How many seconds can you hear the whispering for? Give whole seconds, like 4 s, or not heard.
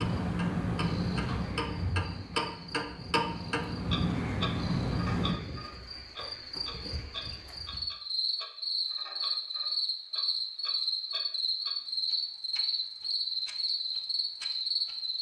not heard.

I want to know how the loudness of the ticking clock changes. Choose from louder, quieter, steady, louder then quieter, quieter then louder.
quieter.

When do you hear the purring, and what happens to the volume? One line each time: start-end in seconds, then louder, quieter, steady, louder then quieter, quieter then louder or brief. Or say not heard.
0.0-5.3 quieter then louder.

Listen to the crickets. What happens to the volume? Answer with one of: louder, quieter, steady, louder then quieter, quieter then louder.
louder.